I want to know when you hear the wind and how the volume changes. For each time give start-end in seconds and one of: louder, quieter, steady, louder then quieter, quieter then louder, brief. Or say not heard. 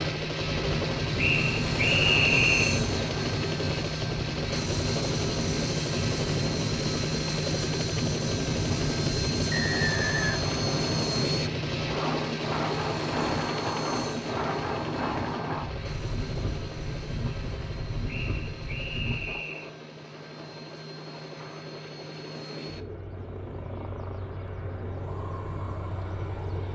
0.0-26.7 quieter.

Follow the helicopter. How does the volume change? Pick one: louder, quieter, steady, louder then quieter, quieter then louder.
quieter.